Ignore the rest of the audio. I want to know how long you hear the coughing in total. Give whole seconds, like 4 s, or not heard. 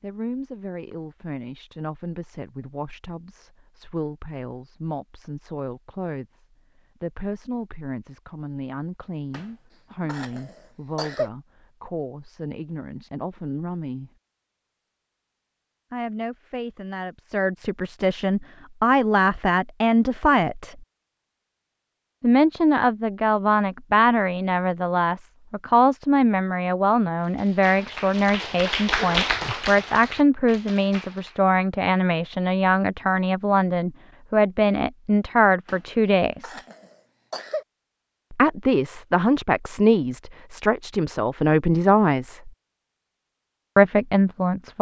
4 s.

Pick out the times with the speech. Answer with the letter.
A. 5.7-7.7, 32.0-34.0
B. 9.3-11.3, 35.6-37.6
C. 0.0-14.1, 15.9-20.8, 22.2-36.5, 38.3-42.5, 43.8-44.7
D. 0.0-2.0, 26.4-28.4
C.